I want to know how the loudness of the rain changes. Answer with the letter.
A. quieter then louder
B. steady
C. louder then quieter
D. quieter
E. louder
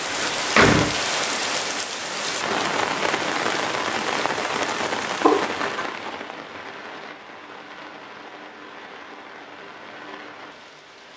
D.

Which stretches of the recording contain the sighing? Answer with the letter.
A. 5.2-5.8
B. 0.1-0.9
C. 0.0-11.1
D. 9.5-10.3
A.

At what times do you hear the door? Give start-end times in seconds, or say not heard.
0.1-0.9.